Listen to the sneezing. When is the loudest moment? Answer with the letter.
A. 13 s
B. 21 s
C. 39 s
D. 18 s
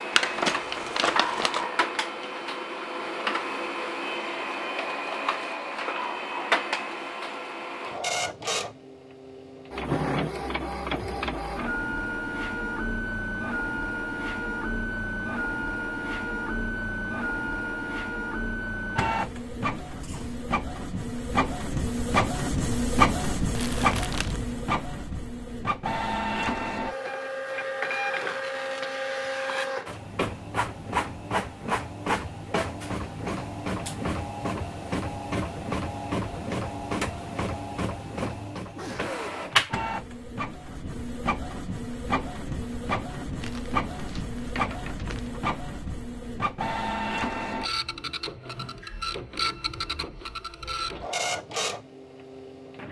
C.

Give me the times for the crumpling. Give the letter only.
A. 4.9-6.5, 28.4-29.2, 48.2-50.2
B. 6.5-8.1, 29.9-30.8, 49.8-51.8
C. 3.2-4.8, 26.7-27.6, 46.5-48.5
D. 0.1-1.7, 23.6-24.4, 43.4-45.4
D.